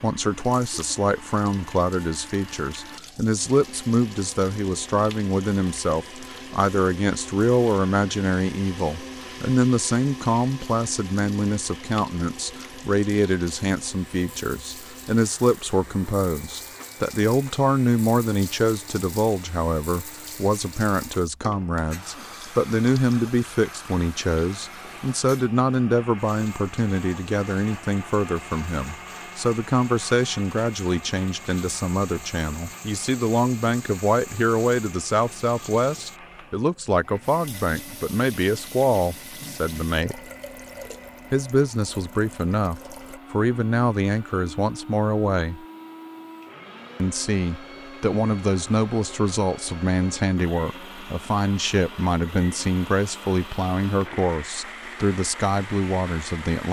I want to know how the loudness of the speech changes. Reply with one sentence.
The loudness of the speech stays about the same.